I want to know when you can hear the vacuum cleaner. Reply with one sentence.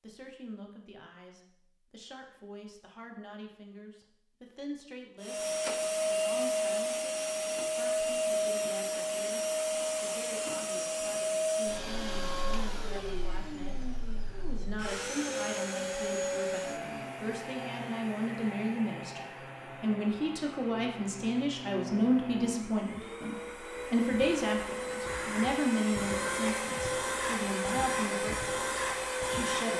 You can hear the vacuum cleaner from 5.2 to 29.7 s.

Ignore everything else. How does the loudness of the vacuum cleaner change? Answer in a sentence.
The loudness of the vacuum cleaner goes down, then up.